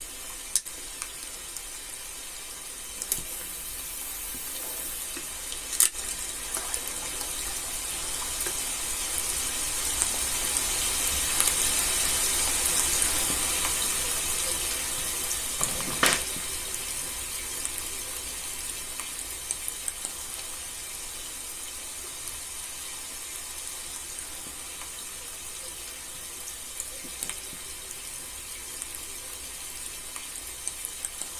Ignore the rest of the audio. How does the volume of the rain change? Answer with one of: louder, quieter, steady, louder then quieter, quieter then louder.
louder then quieter.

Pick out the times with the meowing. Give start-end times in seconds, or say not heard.
15.6-16.2.